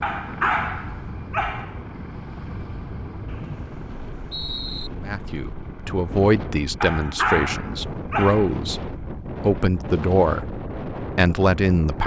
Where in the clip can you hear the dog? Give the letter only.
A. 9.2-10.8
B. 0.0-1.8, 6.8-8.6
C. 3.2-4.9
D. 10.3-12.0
B.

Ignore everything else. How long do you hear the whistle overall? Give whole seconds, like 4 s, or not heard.
2 s.